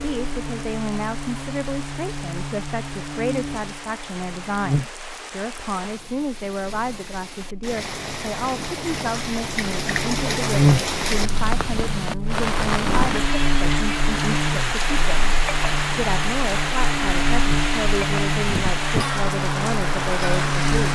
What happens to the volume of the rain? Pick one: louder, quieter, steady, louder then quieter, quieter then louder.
louder.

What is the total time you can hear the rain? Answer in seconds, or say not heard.
21 s.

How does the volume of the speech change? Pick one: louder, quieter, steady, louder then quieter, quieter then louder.
steady.